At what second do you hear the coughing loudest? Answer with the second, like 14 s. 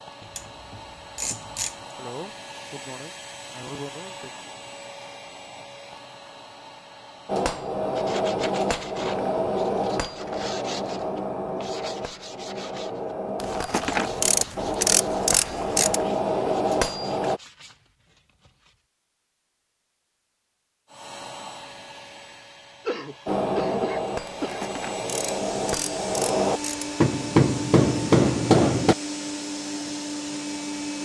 24 s.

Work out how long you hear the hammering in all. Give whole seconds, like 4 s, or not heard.
16 s.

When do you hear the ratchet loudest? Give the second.
15 s.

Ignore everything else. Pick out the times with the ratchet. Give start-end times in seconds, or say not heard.
0.2-1.9, 13.4-16.1, 24.4-26.9.